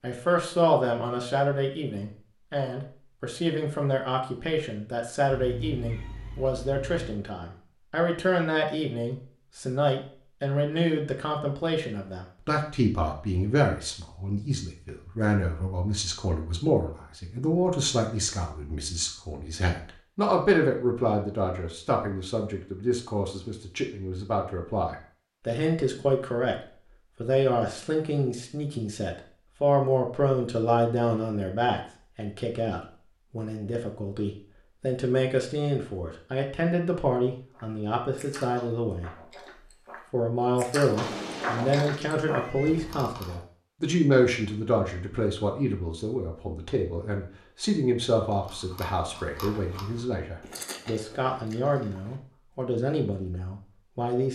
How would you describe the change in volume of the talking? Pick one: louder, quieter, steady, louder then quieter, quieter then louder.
steady.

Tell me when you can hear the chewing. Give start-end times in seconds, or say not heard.
37.5-43.4, 48.2-52.2.